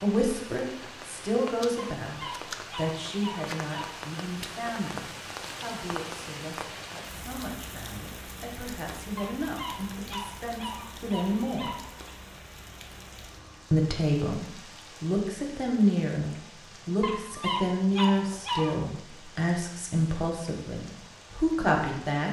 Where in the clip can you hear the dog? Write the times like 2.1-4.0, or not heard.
1.8-4.0, 9.2-12.2, 17.0-18.8.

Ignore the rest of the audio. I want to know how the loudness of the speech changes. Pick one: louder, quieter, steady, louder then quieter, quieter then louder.
quieter then louder.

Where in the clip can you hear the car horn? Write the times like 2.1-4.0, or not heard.
not heard.